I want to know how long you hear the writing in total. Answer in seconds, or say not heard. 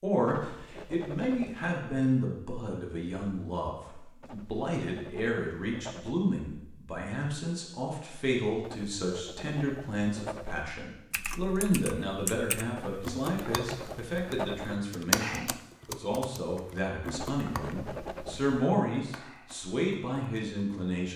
9 s.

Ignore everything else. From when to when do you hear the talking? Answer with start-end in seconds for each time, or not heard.
0.0-21.1.